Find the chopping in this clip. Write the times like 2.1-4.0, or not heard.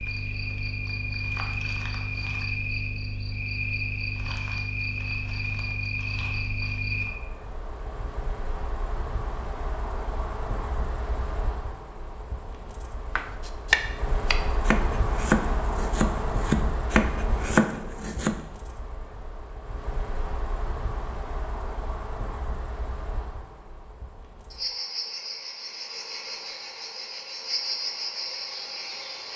13.2-18.4.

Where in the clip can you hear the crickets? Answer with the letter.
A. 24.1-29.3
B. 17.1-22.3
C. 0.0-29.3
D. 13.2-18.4
C.